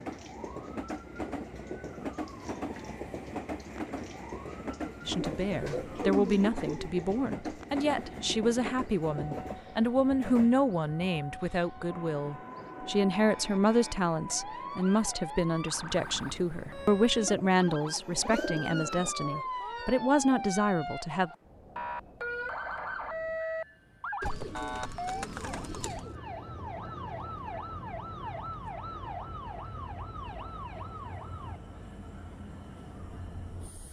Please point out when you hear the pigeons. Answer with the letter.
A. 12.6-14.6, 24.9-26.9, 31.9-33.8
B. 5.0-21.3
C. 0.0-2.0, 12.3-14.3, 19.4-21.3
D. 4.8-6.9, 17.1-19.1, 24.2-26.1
D.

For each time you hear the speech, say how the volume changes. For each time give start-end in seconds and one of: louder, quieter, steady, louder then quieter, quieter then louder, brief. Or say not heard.
5.0-21.3 steady.